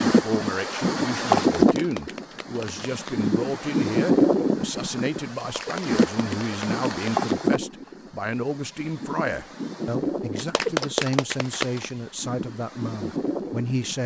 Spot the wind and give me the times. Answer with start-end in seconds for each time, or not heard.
0.0-14.0.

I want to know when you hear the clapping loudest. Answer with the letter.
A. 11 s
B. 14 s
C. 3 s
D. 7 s
A.